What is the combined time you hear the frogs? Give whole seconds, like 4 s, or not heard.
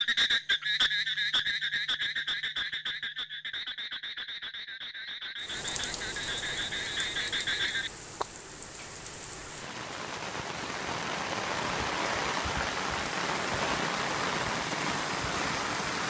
8 s.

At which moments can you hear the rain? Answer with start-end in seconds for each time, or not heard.
5.3-16.0.